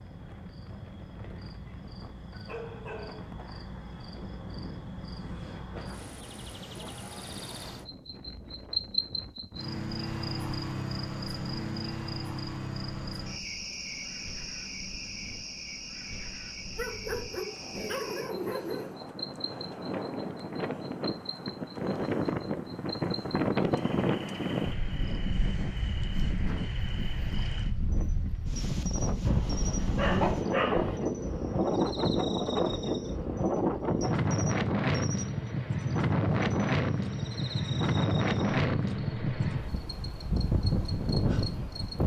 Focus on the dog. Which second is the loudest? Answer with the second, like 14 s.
30 s.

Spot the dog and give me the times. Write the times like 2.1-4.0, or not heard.
2.3-4.0, 16.8-18.9, 29.2-31.0.